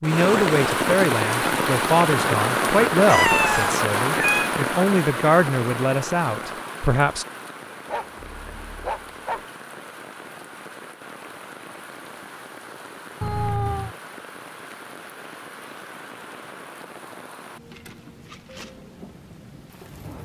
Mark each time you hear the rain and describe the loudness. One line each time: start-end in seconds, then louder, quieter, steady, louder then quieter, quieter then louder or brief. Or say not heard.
0.0-20.2 quieter.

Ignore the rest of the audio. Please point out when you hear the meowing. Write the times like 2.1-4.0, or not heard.
3.0-4.5, 13.2-13.9.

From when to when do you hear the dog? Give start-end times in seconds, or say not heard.
7.8-9.4.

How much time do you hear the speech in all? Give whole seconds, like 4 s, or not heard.
7 s.